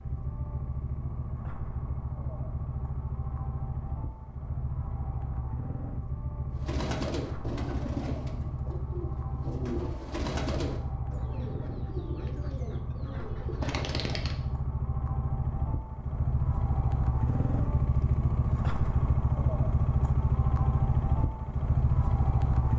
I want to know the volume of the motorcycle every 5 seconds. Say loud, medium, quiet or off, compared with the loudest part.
medium, medium, medium, loud, loud.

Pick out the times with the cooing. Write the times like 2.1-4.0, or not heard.
6.5-14.3.